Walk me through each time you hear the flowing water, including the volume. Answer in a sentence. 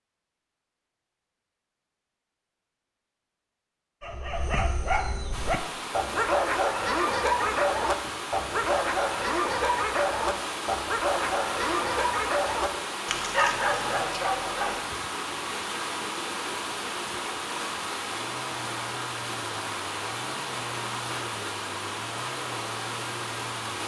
You can hear the flowing water from 5.3 to 23.8 s, at a steady volume.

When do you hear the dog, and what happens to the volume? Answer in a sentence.
The dog can be heard from 4.0 to 15.1 s, at a steady volume.